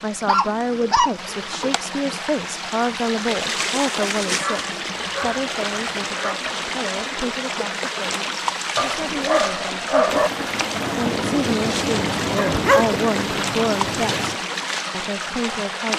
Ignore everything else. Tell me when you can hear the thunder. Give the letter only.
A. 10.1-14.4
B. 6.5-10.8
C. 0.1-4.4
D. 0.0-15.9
A.